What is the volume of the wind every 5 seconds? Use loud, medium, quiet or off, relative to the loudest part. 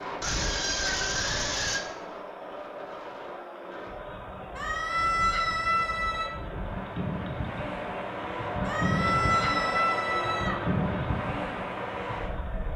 medium, loud, loud.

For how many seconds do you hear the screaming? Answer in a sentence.
The screaming can be heard for 5 seconds in total.